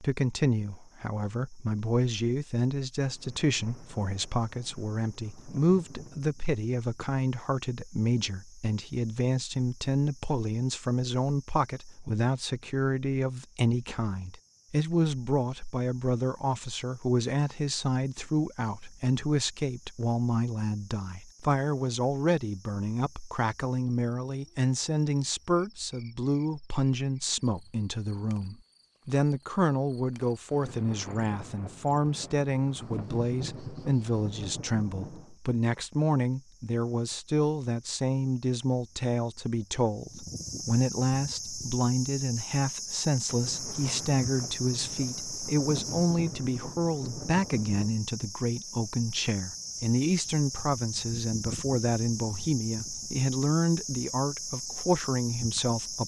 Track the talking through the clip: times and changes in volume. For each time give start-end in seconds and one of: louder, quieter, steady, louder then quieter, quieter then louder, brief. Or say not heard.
0.0-56.0 steady.